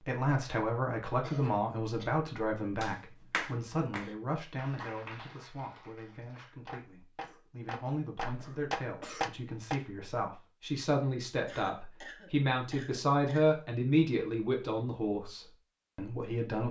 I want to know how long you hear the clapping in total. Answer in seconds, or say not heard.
7 s.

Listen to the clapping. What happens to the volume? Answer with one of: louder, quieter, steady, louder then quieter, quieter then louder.
quieter then louder.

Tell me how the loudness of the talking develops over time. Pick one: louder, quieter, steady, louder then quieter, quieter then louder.
quieter then louder.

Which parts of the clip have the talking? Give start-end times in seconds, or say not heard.
0.0-16.6.